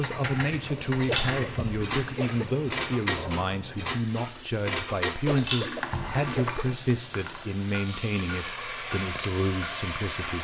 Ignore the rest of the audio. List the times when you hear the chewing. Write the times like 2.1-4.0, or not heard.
0.9-2.1, 5.3-6.5.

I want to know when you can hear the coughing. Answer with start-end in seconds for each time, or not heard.
1.1-2.5, 5.2-6.7.